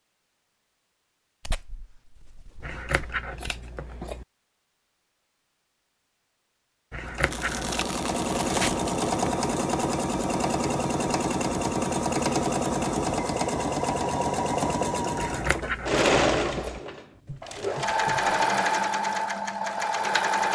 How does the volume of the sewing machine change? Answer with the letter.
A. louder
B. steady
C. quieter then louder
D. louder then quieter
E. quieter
B.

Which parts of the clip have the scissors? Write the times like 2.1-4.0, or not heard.
2.6-4.2, 6.9-7.8, 15.2-16.8.